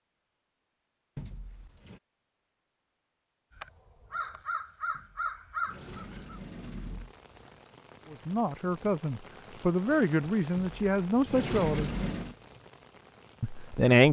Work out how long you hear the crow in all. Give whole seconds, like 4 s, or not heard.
3 s.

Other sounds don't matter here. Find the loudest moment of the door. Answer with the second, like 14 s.
12 s.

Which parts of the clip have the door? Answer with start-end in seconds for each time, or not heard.
1.1-2.0, 4.9-7.2, 10.6-12.3.